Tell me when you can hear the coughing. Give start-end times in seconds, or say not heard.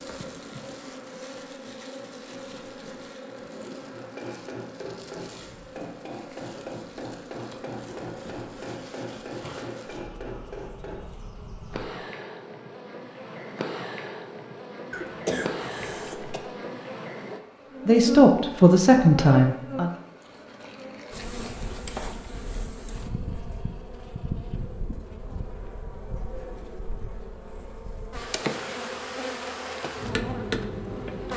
14.9-16.4.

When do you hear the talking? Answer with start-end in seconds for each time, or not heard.
17.9-19.9.